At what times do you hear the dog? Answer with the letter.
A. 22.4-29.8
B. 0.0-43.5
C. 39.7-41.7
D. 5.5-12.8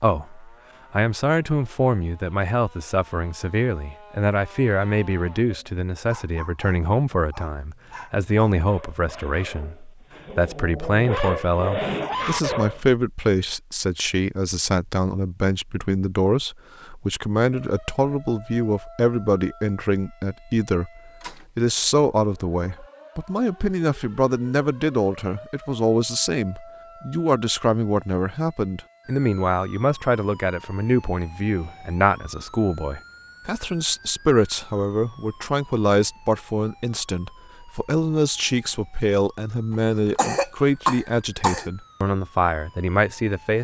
D.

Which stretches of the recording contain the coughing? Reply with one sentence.
You can hear the coughing from 39.7 to 41.7 s.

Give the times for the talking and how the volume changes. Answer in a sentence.
You can hear the talking from 0.0 to 43.5 s, at a steady volume.